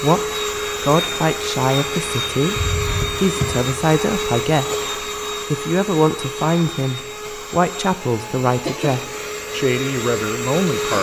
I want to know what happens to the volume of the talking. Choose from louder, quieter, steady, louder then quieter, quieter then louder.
steady.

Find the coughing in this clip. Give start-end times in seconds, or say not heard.
2.5-3.2, 8.4-8.9.